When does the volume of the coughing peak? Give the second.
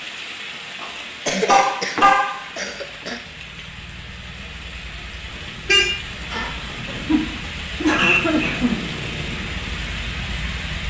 8 s.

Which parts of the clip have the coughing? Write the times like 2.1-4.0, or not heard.
1.2-3.2, 6.8-8.9.